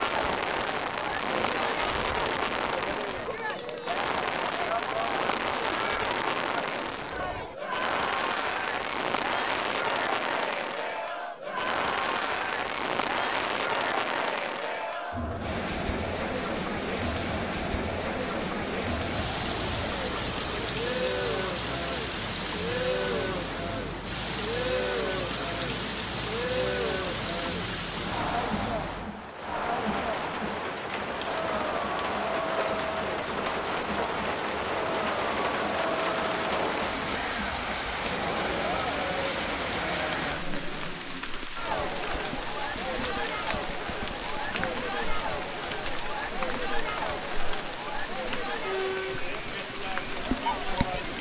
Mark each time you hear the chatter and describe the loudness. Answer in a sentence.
You can hear the chatter from 0.0 to 51.1 s, at a steady volume.